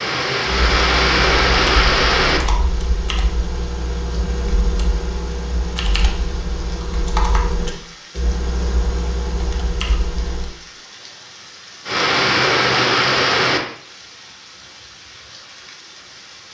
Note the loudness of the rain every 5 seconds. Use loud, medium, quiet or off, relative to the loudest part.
loud, quiet, loud, quiet.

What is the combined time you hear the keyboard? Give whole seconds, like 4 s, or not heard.
10 s.